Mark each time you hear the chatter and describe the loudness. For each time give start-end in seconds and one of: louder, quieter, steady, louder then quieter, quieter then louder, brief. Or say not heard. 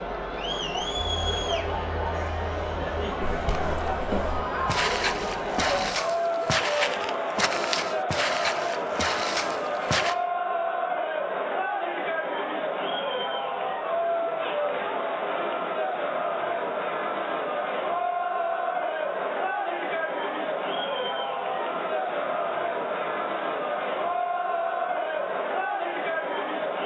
0.0-26.8 steady.